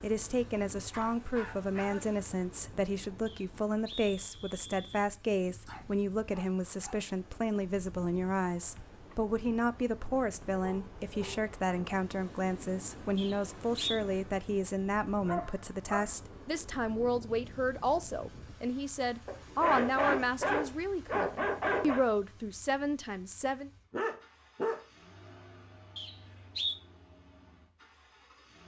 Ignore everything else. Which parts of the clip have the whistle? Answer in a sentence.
The whistle can be heard from 3.2 to 5.0 s, from 13.2 to 14.0 s and from 25.9 to 26.8 s.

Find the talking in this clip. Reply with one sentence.
The talking can be heard from 0.0 to 23.7 s.